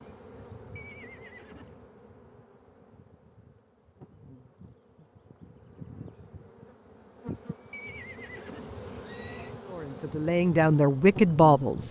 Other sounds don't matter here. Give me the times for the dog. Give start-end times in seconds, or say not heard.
not heard.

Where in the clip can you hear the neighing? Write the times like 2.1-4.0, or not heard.
0.8-1.9, 7.7-9.6.